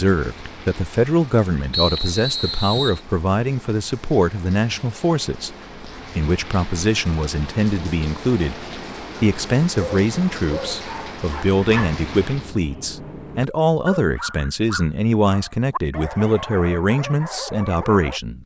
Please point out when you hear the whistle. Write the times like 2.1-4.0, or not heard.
1.7-3.0.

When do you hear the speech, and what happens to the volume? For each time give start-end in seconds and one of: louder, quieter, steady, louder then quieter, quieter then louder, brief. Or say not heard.
0.0-5.5 steady
6.2-18.4 steady.